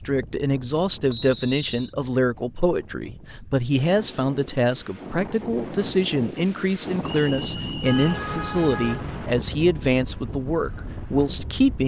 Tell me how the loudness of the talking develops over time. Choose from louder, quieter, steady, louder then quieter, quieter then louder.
steady.